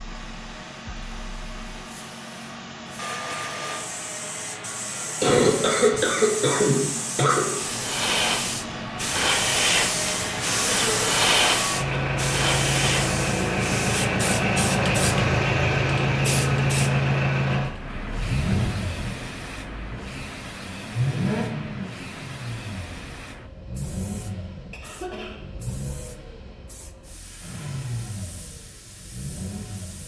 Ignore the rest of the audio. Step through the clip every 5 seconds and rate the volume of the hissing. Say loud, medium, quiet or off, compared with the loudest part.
medium, loud, loud, medium, quiet, quiet.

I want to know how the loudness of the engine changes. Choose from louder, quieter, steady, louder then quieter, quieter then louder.
louder then quieter.